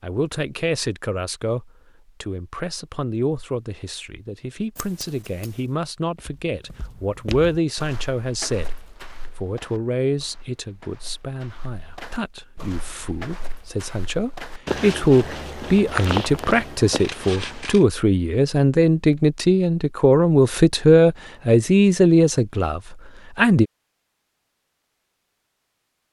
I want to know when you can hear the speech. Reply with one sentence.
You can hear the speech from 0.0 to 8.7 s and from 9.4 to 23.6 s.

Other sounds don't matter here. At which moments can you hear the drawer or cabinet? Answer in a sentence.
The drawer or cabinet can't be heard in this clip.